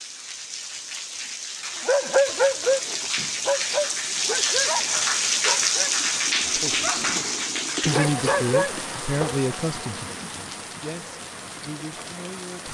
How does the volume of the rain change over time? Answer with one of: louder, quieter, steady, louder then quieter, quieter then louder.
louder then quieter.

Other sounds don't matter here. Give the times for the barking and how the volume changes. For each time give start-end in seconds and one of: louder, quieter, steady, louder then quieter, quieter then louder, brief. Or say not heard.
1.9-9.4 quieter then louder.